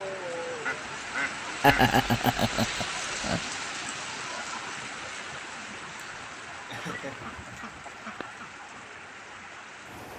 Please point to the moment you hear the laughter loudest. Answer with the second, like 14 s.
2 s.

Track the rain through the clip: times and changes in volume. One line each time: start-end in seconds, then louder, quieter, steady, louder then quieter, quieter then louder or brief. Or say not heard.
0.0-10.1 quieter.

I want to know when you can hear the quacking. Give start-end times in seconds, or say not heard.
0.7-2.0, 6.7-8.4.